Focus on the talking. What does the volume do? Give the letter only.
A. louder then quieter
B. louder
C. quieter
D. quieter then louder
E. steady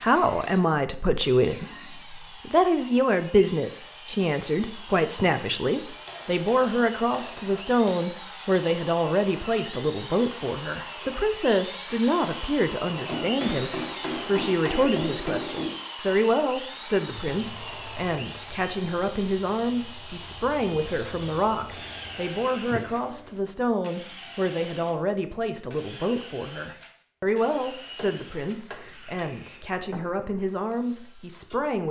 C.